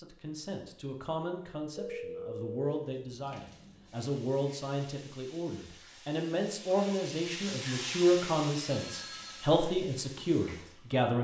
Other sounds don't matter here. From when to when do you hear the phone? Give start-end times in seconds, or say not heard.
1.8-2.8, 8.7-9.5.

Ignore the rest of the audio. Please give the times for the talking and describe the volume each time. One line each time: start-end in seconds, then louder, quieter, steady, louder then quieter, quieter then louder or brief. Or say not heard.
0.0-11.1 louder.